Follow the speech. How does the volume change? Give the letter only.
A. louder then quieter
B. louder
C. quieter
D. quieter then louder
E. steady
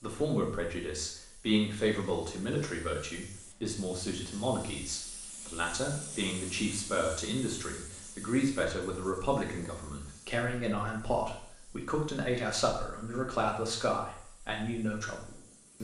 E.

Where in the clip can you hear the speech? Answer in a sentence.
You can hear the speech from 0.0 to 15.8 s.